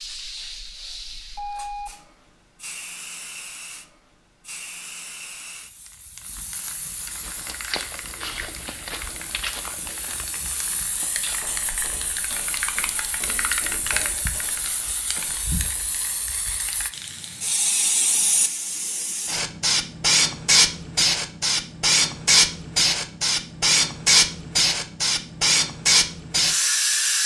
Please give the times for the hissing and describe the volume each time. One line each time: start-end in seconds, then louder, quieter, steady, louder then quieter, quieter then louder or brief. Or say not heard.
0.0-27.2 louder.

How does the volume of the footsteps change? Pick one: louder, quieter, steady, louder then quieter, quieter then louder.
quieter.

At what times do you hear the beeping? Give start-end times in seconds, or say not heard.
0.0-1.9.